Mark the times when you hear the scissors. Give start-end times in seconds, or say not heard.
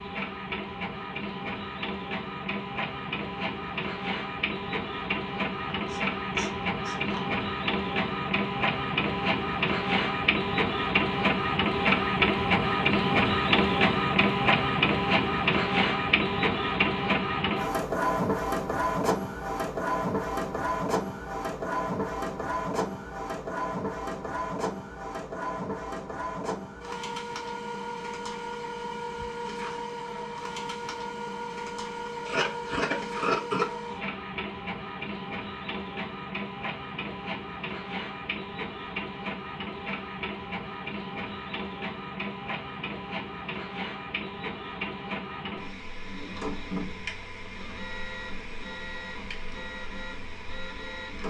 5.7-7.2, 32.2-33.7.